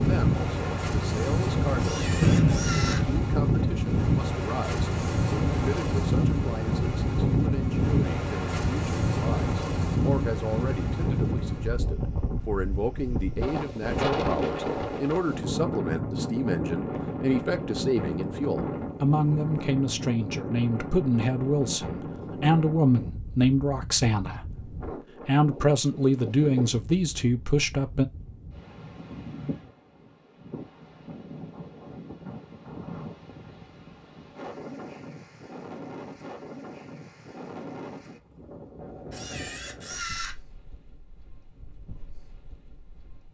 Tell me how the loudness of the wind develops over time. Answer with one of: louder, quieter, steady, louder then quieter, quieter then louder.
quieter.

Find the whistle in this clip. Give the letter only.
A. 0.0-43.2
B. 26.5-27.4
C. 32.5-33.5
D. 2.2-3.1
D.